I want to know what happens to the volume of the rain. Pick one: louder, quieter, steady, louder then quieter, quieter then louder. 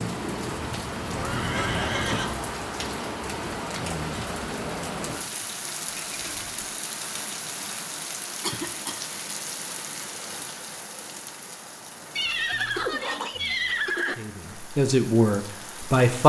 quieter.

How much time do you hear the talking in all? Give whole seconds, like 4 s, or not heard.
2 s.